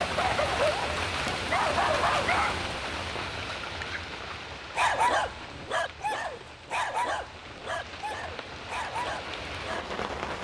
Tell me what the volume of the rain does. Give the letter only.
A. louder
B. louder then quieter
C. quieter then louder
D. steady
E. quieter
C.